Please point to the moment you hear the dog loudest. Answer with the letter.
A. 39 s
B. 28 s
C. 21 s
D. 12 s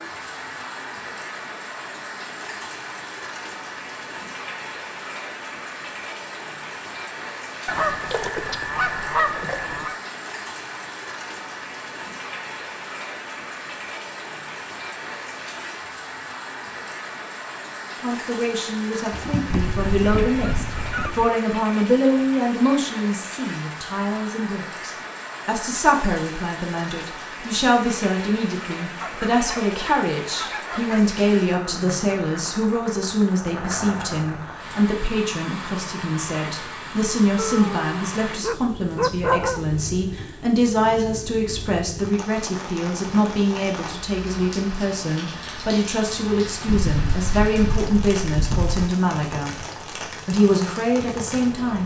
A.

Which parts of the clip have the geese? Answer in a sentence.
The geese can be heard from 7.7 to 9.9 s, from 19.4 to 21.3 s, from 29.0 to 31.1 s and from 46.6 to 48.8 s.